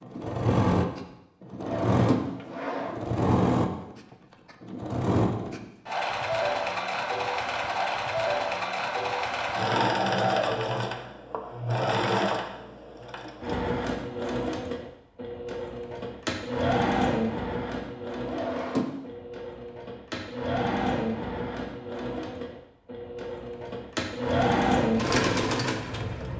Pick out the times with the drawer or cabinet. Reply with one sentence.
You can hear the drawer or cabinet from 1.6 to 3.0 s and from 18.2 to 18.9 s.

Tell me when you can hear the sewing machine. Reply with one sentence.
The sewing machine can be heard from 0.0 to 26.3 s.